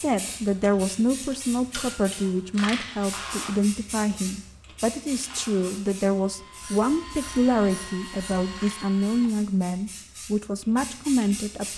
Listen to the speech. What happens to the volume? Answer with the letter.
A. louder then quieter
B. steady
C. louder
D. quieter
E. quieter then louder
B.